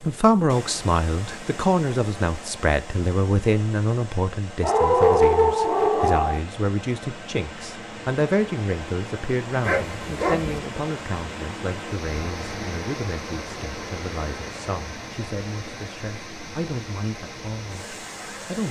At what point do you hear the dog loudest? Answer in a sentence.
The volume of the dog peaks at 5 seconds.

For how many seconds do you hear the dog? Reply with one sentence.
The dog can be heard for 3 seconds in total.